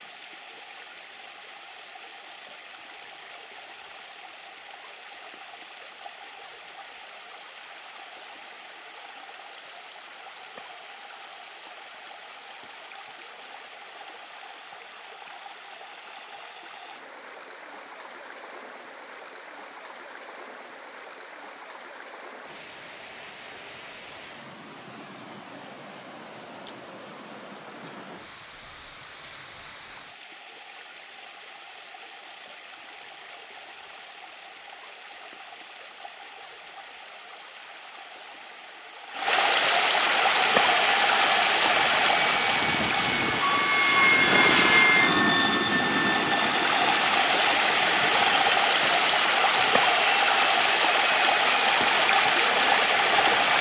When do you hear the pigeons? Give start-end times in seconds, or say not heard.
not heard.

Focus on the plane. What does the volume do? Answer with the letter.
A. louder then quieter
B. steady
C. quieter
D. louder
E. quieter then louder
A.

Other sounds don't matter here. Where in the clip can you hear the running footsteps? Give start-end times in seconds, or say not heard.
not heard.